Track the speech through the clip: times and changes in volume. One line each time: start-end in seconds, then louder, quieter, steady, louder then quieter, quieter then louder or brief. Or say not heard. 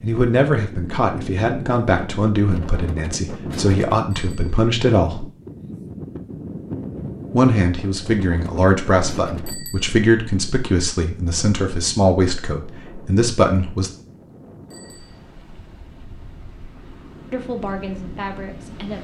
0.0-5.2 steady
7.3-13.9 steady
17.3-18.9 brief.